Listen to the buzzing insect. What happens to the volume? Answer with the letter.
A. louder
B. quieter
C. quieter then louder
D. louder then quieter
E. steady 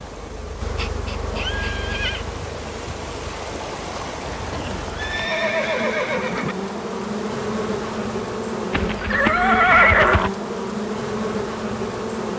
C.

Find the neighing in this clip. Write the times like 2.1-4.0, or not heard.
1.2-2.2, 4.5-6.5, 8.7-10.3.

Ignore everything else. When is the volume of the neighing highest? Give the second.
10 s.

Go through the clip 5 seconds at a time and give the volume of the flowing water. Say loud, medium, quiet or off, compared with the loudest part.
loud, loud, off.